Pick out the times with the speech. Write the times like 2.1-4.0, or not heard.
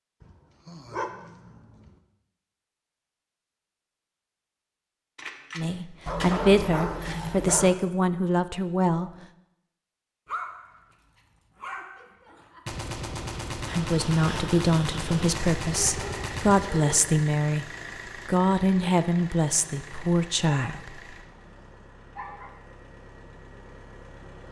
5.5-9.1, 13.7-17.6, 18.2-21.0.